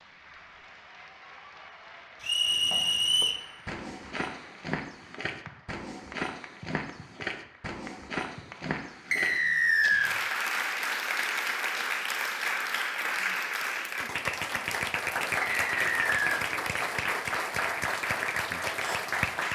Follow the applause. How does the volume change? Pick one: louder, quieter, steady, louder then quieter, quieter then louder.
louder.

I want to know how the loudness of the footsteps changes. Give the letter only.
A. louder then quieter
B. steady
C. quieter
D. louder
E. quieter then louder
B.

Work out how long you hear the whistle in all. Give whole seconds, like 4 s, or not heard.
3 s.